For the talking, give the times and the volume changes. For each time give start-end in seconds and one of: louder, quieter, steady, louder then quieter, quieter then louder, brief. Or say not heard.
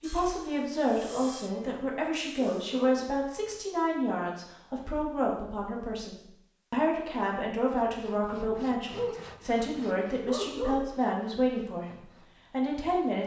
0.0-13.2 steady.